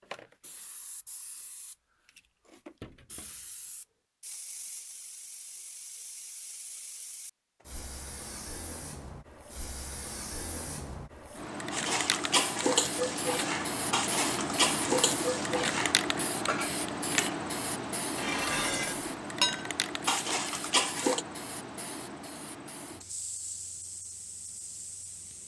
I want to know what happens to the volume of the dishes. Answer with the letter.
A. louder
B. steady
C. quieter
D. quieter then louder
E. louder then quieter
B.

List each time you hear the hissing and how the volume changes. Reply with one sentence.
The hissing can be heard from 0.0 to 25.4 s, getting louder then quieter.